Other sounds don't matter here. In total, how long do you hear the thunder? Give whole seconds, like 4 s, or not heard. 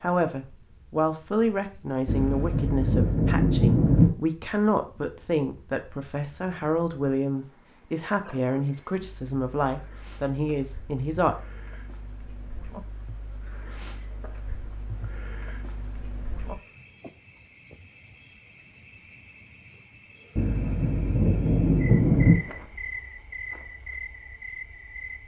4 s.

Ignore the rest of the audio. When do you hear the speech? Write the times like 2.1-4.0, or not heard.
0.0-11.3.